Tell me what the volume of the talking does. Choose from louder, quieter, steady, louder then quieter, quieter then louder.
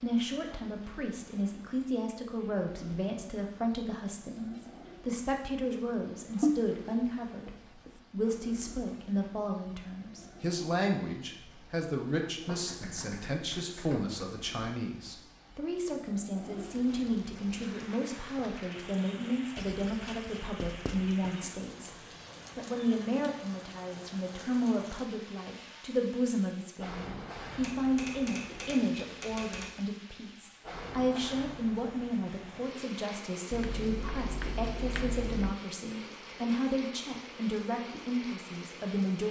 steady.